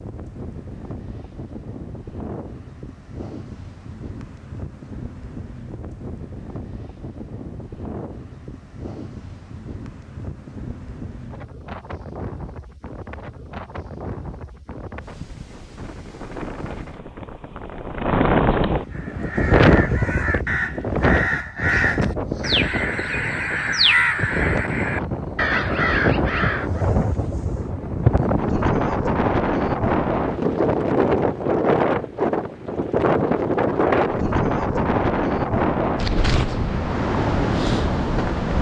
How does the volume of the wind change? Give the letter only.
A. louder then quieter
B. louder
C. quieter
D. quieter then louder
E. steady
B.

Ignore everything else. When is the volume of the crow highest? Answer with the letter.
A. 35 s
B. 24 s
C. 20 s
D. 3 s
B.